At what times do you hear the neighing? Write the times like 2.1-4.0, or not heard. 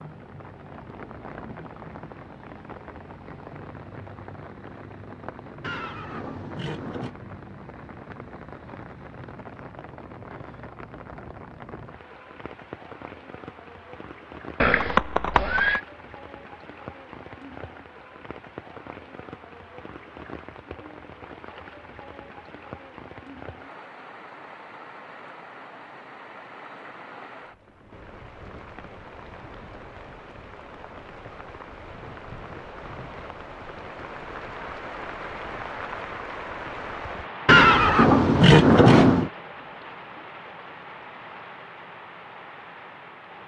5.6-7.2, 14.6-15.8, 37.5-39.3.